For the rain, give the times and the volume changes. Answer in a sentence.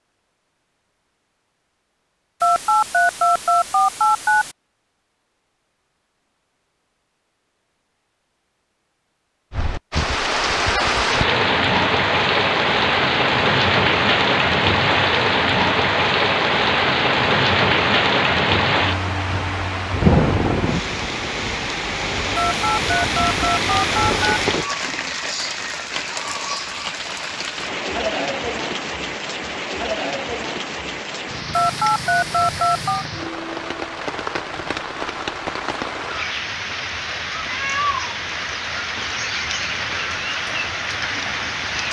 The rain can be heard from 9.5 to 41.8 s, getting quieter.